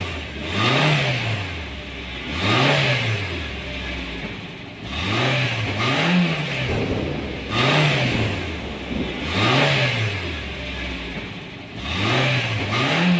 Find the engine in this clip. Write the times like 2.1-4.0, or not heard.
0.0-13.1.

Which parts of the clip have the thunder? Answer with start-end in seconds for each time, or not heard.
6.2-9.4.